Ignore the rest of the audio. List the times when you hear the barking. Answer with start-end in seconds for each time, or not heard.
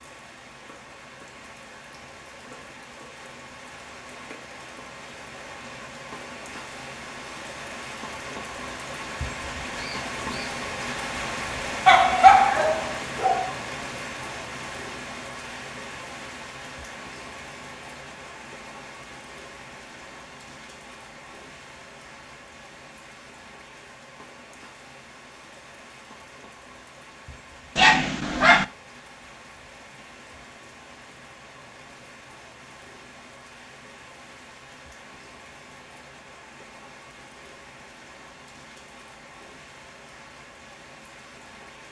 11.8-13.5, 27.8-28.6.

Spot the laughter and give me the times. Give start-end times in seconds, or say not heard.
not heard.